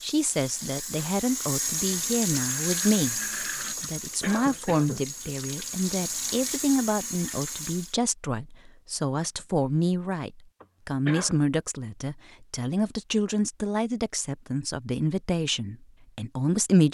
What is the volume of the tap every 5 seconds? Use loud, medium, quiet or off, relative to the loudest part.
loud, loud, off, off.